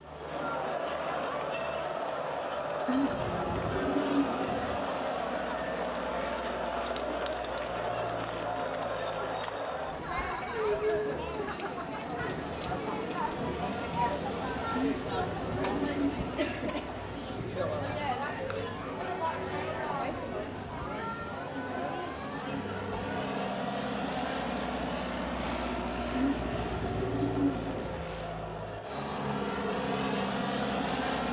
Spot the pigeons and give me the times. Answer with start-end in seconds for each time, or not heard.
2.9-4.8, 14.7-16.2, 26.1-28.1.